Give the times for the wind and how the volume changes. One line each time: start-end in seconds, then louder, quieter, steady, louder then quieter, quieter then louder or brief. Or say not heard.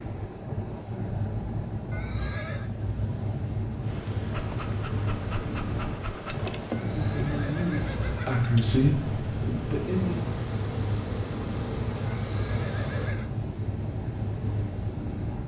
0.0-15.4 steady.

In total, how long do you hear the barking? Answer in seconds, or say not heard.
2 s.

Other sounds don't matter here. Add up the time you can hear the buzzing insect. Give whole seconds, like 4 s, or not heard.
9 s.